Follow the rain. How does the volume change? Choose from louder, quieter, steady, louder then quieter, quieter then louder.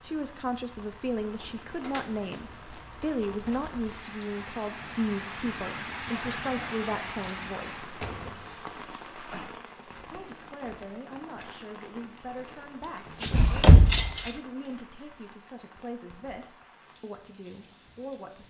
louder then quieter.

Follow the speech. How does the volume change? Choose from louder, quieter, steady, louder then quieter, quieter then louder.
quieter.